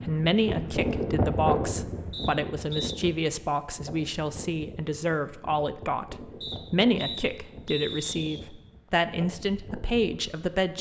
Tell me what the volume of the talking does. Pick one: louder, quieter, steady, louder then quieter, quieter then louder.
steady.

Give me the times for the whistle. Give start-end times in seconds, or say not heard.
2.1-3.0, 6.4-8.4.